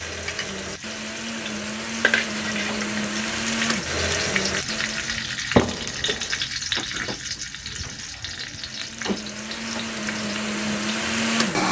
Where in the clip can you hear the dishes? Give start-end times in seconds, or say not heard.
not heard.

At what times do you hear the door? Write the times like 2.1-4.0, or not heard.
5.5-6.5.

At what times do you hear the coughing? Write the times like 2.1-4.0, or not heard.
not heard.